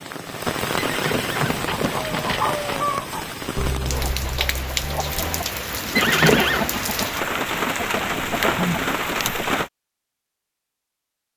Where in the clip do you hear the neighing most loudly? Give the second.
6 s.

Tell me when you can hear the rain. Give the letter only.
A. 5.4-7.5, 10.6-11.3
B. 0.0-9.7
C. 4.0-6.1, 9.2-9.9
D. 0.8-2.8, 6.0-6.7
B.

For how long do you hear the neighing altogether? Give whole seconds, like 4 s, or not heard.
3 s.